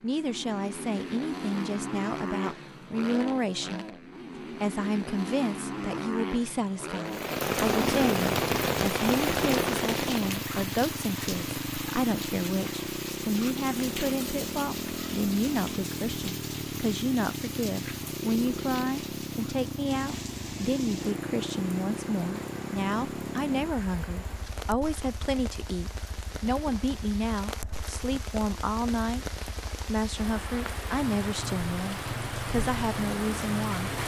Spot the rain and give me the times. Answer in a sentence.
The rain can be heard from 7.0 to 34.0 s.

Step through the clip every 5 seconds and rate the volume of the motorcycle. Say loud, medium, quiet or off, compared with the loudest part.
loud, loud, loud, loud, loud, quiet, loud.